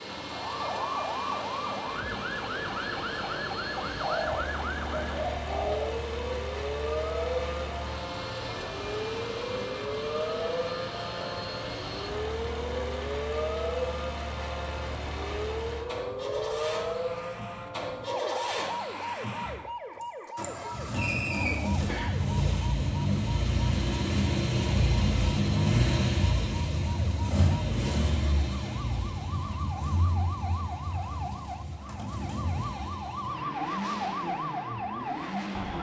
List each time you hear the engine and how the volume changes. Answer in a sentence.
The engine can be heard from 0.0 to 35.7 s, getting louder then quieter.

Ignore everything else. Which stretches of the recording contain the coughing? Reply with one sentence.
You can hear the coughing from 21.9 to 22.3 s.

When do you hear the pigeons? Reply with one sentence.
The pigeons can be heard from 4.0 to 6.0 s.